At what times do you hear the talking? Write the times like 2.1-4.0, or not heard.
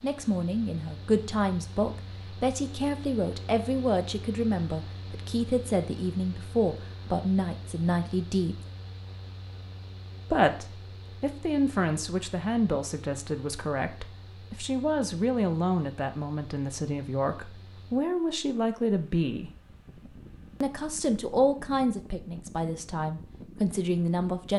0.0-8.6, 10.3-19.5, 20.6-24.5.